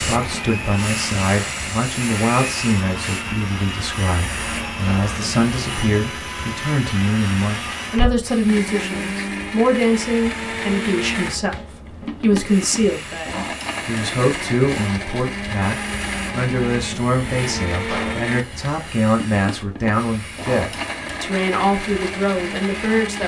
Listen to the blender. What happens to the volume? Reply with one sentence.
The volume of the blender stays about the same.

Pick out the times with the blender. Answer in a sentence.
The blender can be heard from 0.0 to 23.2 s.